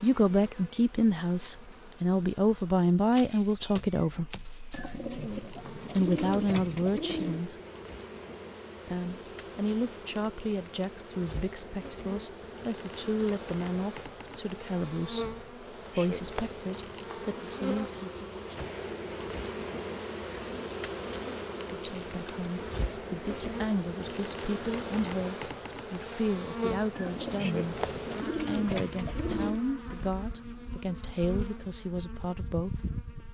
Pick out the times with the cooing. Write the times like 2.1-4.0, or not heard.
4.7-7.5, 26.9-29.6.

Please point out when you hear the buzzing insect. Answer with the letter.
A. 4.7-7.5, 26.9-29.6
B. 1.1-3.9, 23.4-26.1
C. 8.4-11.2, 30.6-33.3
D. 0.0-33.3
D.